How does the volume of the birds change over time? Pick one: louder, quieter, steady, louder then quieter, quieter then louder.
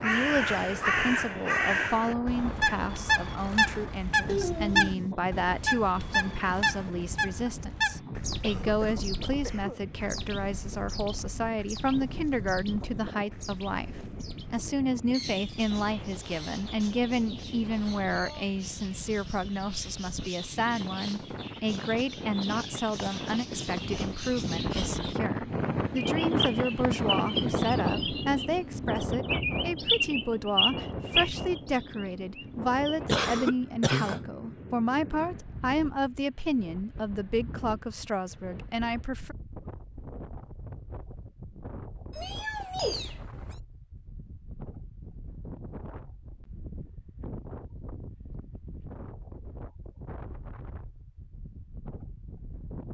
quieter then louder.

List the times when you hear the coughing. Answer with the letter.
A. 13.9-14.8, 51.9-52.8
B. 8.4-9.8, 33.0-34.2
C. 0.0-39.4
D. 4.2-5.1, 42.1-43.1
B.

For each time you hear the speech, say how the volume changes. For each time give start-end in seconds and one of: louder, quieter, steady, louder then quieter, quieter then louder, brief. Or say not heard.
0.0-39.4 steady.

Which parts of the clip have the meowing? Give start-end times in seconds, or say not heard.
4.2-5.1, 42.1-43.1.